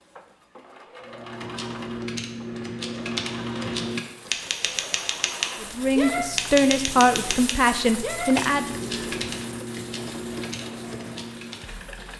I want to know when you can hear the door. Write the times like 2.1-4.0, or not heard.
not heard.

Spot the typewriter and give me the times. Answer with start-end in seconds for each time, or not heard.
1.1-11.8.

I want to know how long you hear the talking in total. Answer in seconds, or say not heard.
3 s.